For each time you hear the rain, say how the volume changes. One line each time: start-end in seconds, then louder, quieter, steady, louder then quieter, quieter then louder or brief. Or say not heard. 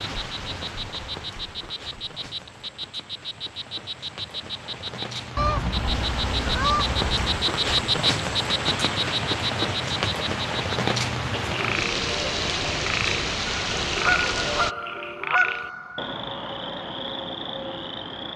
0.0-14.8 louder.